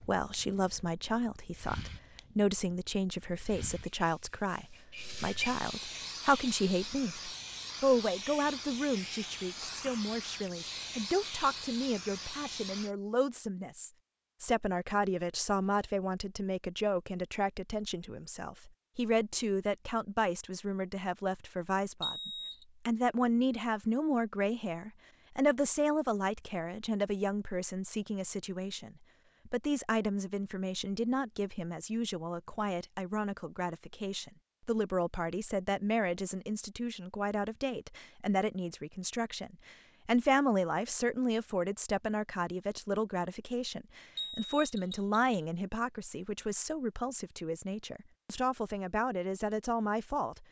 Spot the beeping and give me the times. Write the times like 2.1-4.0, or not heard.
22.0-22.6, 44.1-45.1.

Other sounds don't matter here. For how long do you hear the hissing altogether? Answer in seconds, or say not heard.
13 s.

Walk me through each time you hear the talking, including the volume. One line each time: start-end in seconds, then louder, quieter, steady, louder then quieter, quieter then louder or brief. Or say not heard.
0.0-50.4 steady.